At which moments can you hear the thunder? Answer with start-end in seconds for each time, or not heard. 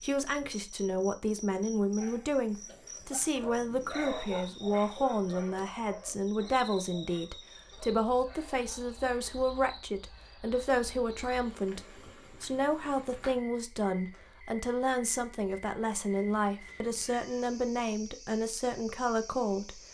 not heard.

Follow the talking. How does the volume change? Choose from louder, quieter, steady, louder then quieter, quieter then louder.
steady.